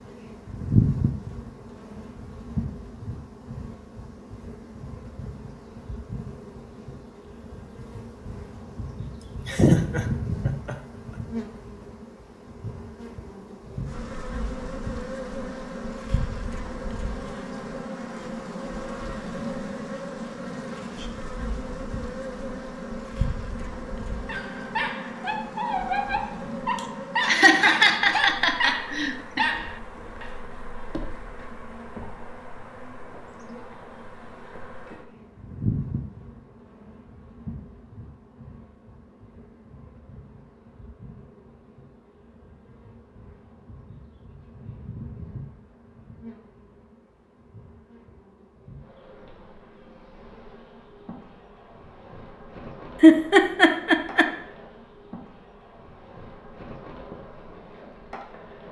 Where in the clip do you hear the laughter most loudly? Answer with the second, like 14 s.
53 s.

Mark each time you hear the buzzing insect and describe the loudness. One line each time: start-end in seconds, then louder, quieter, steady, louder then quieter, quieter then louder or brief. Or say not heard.
0.0-58.6 quieter.